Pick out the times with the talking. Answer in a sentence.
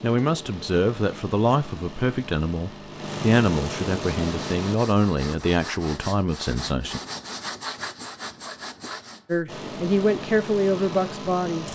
The talking can be heard from 0.0 to 7.0 s and from 9.2 to 11.6 s.